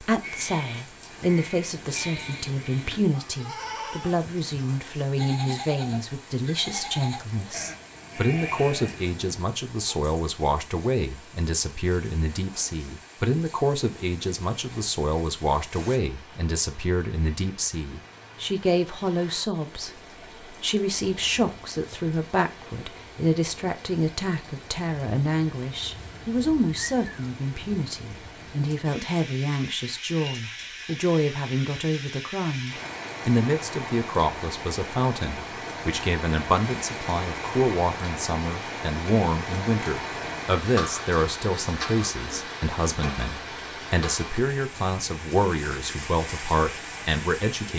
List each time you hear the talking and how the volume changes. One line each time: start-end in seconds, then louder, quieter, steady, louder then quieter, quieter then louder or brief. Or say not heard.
0.0-47.7 steady.